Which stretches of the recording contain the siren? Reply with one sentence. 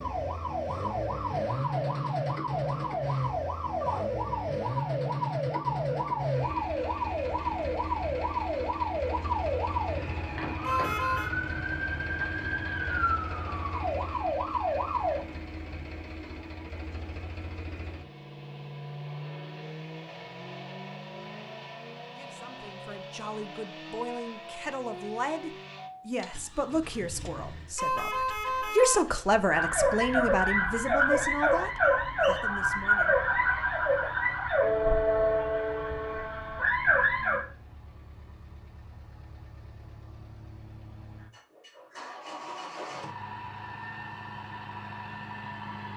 You can hear the siren from 0.0 to 15.2 s and from 29.5 to 37.5 s.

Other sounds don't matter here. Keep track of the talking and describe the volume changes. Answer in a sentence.
The loudness of the talking goes up, then down.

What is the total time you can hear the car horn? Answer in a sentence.
The car horn can be heard for 2 seconds in total.